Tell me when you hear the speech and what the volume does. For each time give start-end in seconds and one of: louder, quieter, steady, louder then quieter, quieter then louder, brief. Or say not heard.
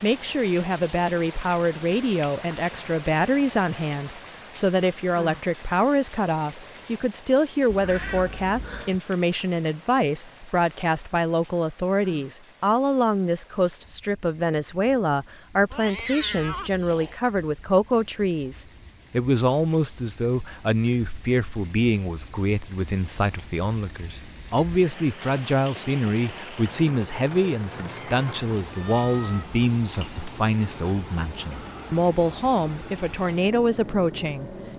0.0-34.5 steady.